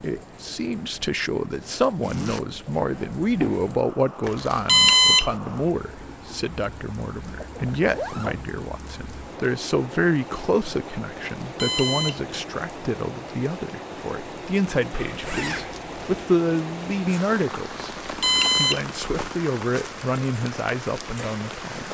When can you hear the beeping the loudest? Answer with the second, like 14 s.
5 s.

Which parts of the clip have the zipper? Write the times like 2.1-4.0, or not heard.
2.0-2.5, 7.3-8.4, 14.9-16.2.